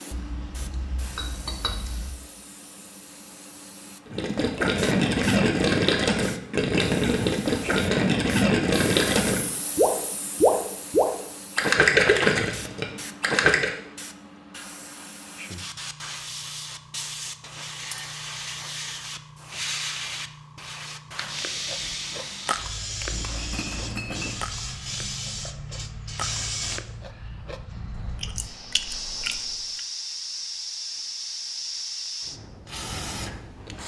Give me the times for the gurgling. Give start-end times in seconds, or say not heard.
4.1-13.7.